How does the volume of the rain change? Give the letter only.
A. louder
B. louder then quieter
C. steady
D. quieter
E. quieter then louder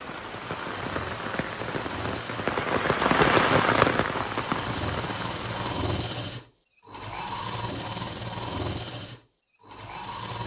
B.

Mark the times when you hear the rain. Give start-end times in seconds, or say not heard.
0.0-5.8.